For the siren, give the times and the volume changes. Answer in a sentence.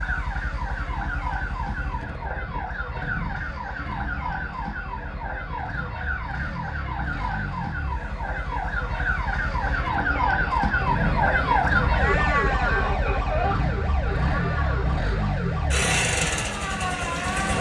The siren can be heard from 0.0 to 17.5 s, getting louder then quieter.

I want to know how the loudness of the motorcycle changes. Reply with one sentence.
The loudness of the motorcycle goes up.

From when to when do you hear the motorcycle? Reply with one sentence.
You can hear the motorcycle from 0.0 to 17.5 s.